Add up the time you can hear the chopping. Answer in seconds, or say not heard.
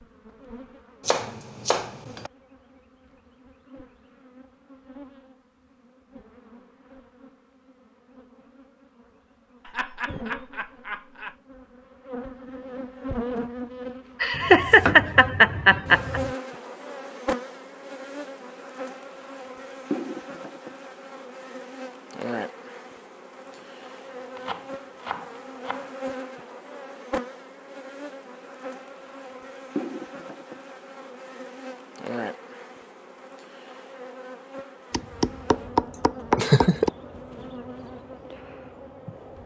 7 s.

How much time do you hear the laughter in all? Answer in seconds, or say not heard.
5 s.